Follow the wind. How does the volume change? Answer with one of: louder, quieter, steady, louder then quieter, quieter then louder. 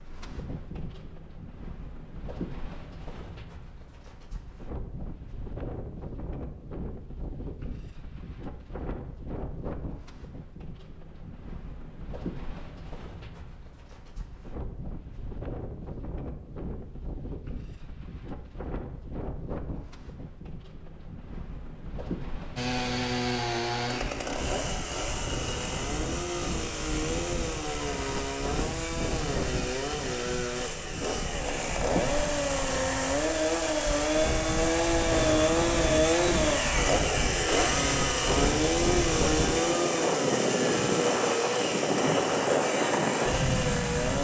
louder.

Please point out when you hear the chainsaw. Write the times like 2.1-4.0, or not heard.
22.6-44.1.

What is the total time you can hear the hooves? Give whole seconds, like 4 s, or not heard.
not heard.